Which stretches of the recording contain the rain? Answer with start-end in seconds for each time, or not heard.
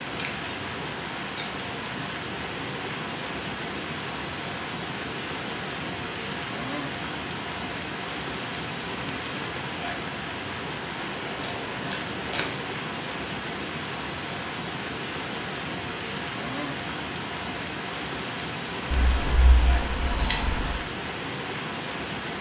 0.0-22.3.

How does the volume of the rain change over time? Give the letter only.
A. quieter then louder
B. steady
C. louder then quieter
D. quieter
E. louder
B.